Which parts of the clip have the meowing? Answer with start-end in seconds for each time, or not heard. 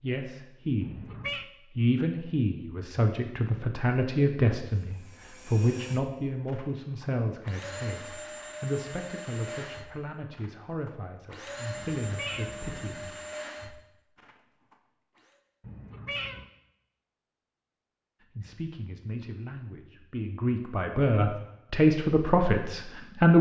0.8-1.4, 11.8-13.1, 15.6-16.4.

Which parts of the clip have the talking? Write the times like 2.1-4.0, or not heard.
0.0-1.1, 1.8-13.2, 18.4-23.3.